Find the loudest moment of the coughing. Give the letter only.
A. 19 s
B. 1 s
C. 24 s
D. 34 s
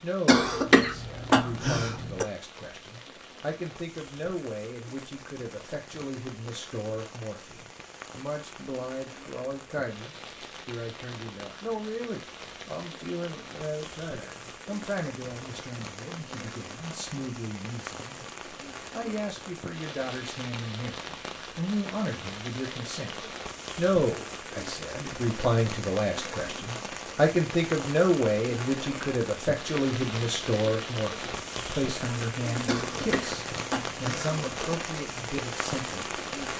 B.